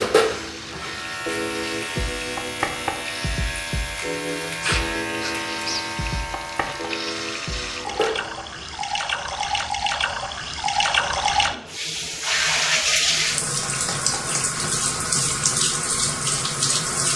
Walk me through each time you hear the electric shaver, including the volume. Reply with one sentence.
The electric shaver can be heard from 0.0 to 9.0 s, at a steady volume.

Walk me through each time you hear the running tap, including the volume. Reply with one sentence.
The running tap can be heard from 0.2 to 17.1 s, getting louder.